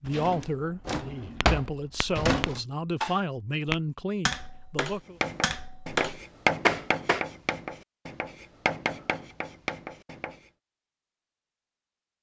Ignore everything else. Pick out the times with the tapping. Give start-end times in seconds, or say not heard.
1.4-7.2.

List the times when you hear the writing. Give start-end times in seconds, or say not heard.
5.2-10.4.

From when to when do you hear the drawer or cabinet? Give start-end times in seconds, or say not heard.
0.1-2.6.